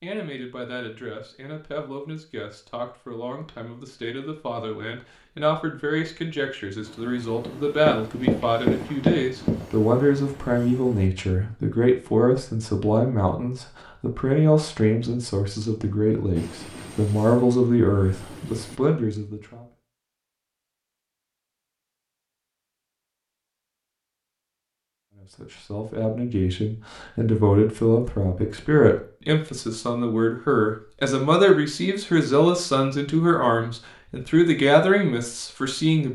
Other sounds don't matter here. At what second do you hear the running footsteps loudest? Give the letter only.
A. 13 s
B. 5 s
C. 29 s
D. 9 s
D.